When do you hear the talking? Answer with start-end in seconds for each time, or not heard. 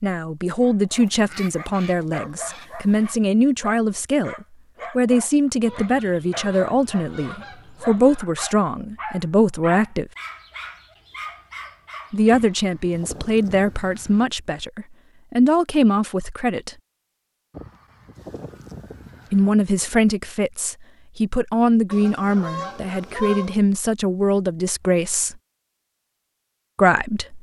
0.0-10.1, 12.1-16.7, 19.3-25.4, 26.8-27.3.